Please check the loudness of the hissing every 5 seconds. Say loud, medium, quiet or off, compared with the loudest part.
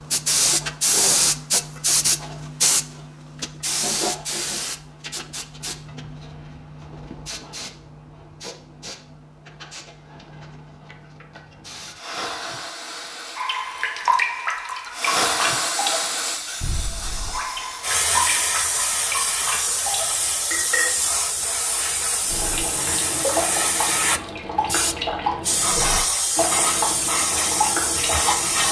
loud, quiet, quiet, loud, loud, loud.